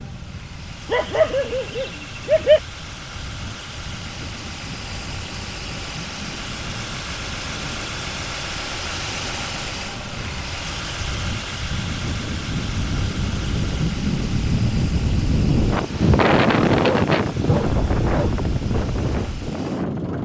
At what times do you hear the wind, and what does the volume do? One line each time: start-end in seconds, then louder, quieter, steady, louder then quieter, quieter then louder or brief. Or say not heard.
0.0-20.1 louder.